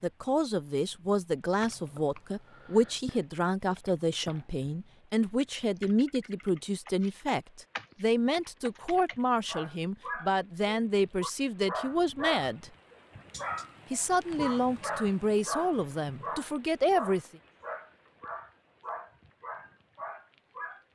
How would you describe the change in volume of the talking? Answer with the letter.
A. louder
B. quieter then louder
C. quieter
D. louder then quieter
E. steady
E.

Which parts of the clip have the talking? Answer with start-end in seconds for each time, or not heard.
0.0-12.7, 13.9-17.2.